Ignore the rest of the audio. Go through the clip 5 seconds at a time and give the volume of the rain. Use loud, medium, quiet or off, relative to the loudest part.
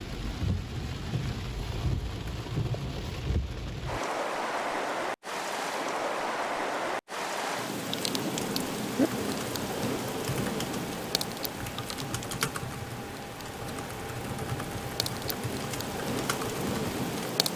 loud, loud, medium, loud.